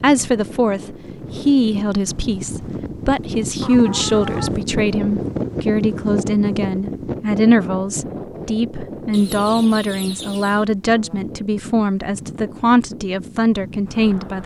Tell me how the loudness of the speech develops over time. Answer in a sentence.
The loudness of the speech stays about the same.